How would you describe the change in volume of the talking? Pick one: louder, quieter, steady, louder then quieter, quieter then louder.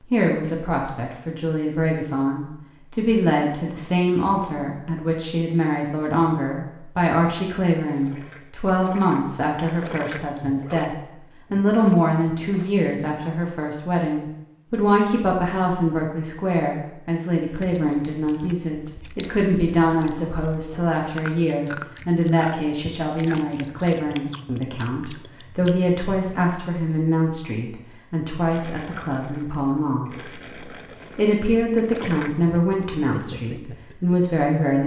steady.